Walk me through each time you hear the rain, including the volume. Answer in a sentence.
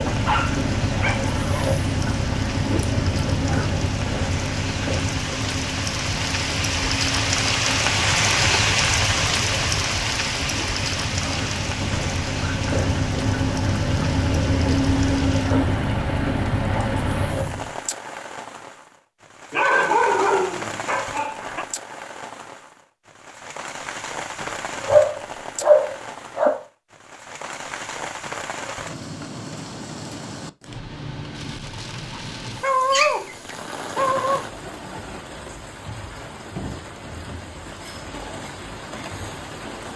The rain can be heard from 0.0 to 39.9 s, getting quieter.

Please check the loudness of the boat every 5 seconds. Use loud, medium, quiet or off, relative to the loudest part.
loud, medium, loud, loud, off, off, off, off.